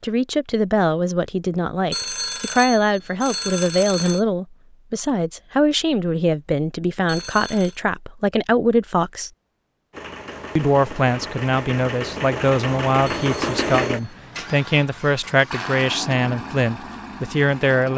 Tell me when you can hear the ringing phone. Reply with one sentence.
You can hear the ringing phone from 1.9 to 4.2 s, from 7.0 to 7.8 s and from 13.1 to 13.9 s.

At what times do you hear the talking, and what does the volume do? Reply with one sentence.
You can hear the talking from 0.0 to 9.3 s, at a steady volume; and from 10.6 to 17.9 s, at a steady volume.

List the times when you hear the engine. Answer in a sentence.
You can hear the engine from 9.9 to 17.9 s.